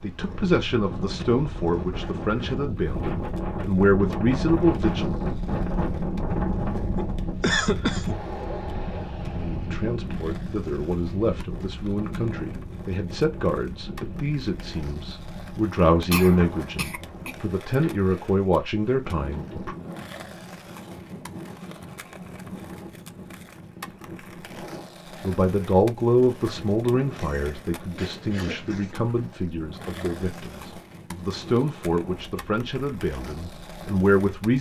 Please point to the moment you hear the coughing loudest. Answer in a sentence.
The loudest moment of the coughing is at 8 seconds.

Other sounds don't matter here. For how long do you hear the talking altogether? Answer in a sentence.
You can hear the talking for 25 seconds altogether.